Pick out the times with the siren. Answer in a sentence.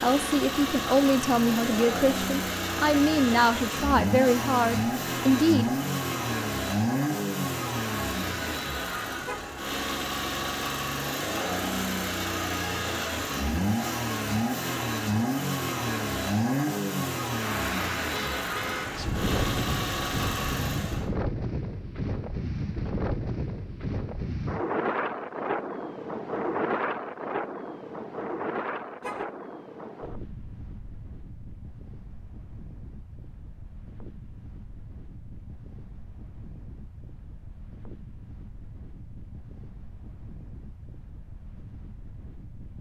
You can't hear the siren here.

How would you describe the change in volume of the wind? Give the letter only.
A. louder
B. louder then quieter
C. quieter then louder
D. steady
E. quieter
E.